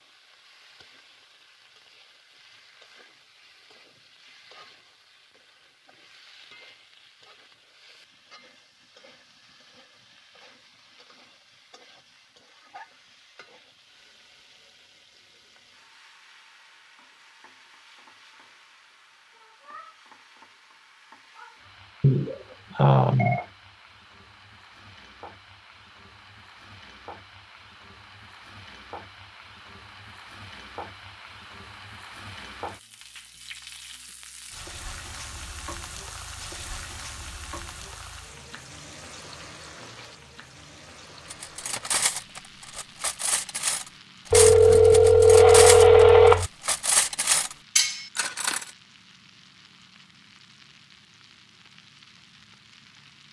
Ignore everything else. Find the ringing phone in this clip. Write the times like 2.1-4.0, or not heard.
22.0-23.4, 44.3-46.5.